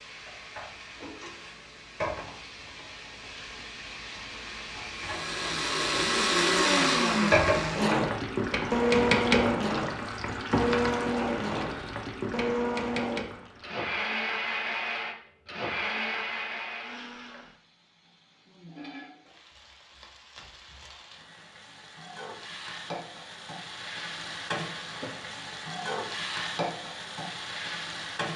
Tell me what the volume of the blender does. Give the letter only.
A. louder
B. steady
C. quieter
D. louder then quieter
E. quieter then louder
C.